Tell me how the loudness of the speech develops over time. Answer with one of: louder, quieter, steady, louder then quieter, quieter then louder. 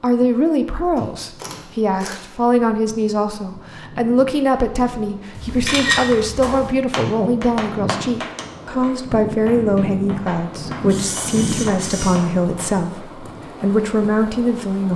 steady.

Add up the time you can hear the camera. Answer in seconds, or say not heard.
4 s.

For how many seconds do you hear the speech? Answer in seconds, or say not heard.
15 s.